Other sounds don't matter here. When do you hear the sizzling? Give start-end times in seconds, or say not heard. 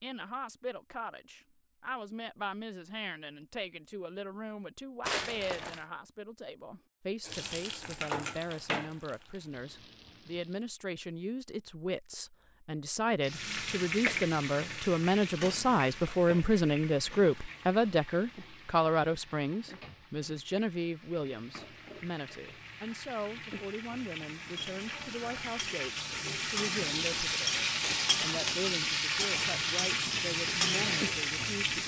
7.2-10.7, 13.2-31.8.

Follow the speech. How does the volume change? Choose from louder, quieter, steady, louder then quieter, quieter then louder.
louder then quieter.